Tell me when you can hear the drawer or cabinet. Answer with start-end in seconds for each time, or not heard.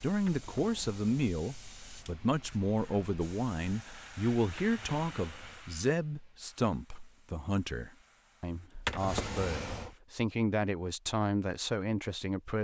0.1-1.4, 4.5-5.7, 8.8-9.9.